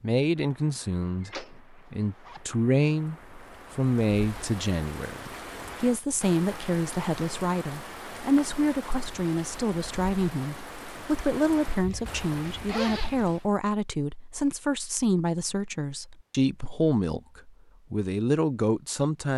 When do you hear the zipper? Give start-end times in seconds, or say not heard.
1.8-2.5, 11.8-13.4.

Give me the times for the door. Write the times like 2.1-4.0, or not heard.
1.2-1.8.